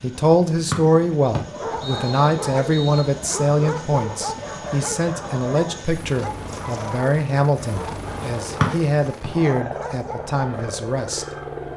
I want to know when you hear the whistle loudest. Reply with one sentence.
The loudest moment of the whistle is at 9 seconds.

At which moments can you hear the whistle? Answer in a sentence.
You can hear the whistle from 0.7 to 3.1 s and from 8.6 to 9.3 s.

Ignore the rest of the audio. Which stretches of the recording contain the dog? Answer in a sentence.
You can hear the dog from 1.4 to 10.8 s.